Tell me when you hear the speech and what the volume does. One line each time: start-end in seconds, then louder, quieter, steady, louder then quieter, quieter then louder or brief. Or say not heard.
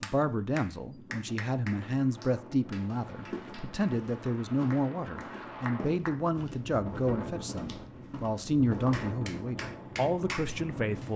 0.0-11.1 steady.